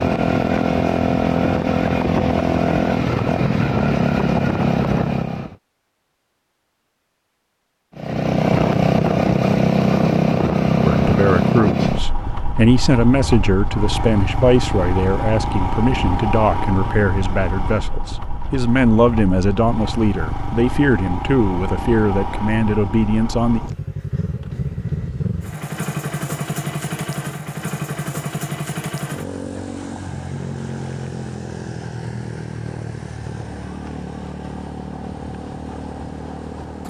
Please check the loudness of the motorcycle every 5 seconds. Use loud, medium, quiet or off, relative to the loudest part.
loud, loud, loud, medium, medium, medium, quiet, quiet.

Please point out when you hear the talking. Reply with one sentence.
The talking can be heard from 10.8 to 23.6 s.